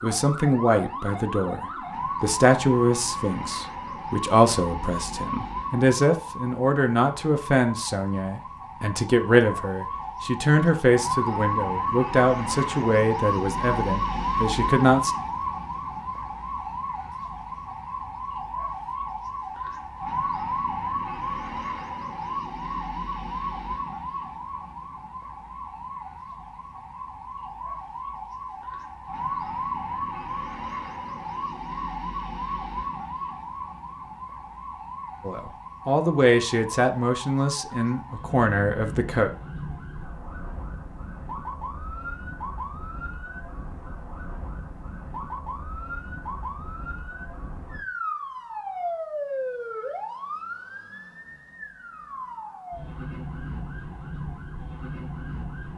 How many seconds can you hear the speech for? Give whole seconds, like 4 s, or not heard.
19 s.